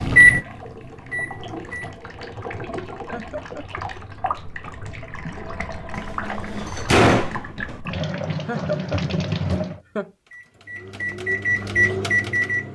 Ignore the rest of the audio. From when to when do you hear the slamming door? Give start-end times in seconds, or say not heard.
6.0-7.8.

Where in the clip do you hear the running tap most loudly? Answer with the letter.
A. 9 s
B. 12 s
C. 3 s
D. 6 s
A.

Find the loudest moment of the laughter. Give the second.
9 s.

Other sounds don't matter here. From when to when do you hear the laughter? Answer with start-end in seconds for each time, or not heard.
3.1-3.8, 8.4-10.1.